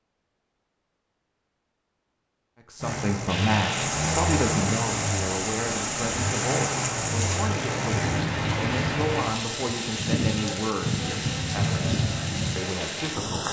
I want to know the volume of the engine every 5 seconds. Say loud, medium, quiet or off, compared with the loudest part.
loud, loud, off.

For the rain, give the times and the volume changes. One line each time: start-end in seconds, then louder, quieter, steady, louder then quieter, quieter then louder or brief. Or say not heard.
3.2-13.4 steady.